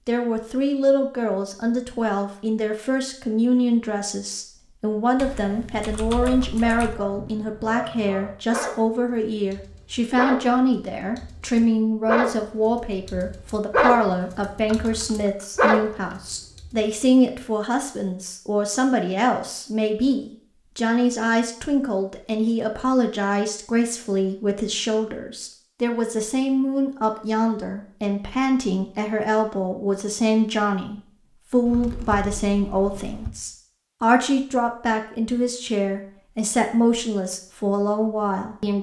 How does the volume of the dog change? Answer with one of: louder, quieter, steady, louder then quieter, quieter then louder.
louder.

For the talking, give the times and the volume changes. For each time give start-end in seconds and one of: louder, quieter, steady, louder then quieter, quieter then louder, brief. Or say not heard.
0.1-38.7 steady.